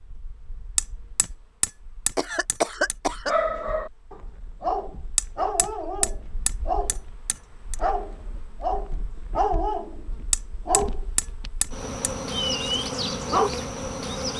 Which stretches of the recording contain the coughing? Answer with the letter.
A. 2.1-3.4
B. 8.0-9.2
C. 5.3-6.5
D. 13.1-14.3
A.